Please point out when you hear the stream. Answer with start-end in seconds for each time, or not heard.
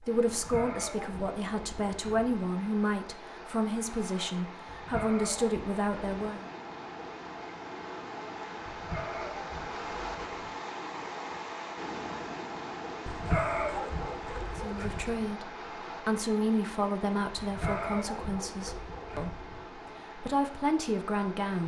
0.0-21.6.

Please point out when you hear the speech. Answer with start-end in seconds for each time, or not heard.
0.0-6.5, 14.6-21.6.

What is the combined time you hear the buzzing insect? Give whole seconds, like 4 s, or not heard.
not heard.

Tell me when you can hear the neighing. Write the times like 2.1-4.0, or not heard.
not heard.